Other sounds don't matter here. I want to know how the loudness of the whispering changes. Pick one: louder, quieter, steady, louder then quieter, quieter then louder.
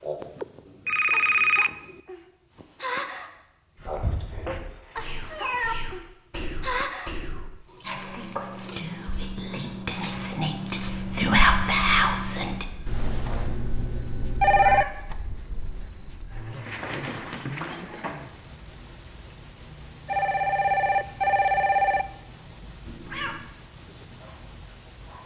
louder.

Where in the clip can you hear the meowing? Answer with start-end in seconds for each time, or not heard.
4.0-5.8, 14.4-15.1, 22.9-23.4.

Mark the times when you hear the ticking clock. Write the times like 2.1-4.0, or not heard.
not heard.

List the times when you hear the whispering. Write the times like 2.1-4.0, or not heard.
3.8-12.7.